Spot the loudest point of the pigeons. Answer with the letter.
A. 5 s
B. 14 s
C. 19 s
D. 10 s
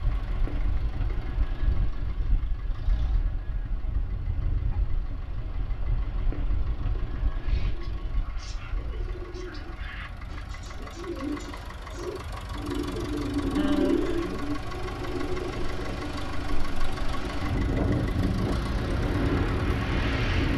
B.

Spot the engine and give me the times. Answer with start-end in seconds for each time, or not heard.
0.0-20.5.